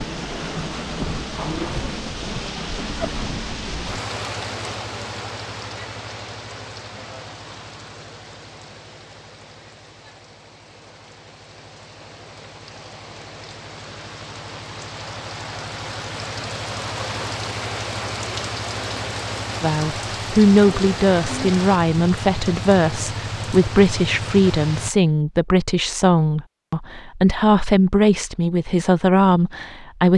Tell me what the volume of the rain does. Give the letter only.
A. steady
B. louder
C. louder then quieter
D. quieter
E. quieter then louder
E.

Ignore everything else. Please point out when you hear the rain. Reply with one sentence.
You can hear the rain from 0.0 to 24.9 s.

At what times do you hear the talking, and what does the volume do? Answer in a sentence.
The talking can be heard from 19.6 to 30.1 s, at a steady volume.